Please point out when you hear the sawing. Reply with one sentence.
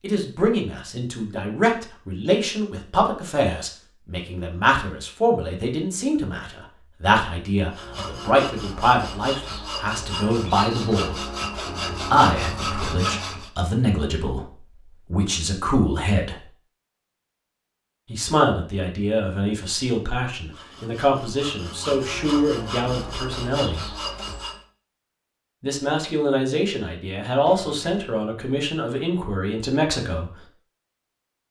The sawing can be heard from 7.7 to 13.5 s and from 20.5 to 24.6 s.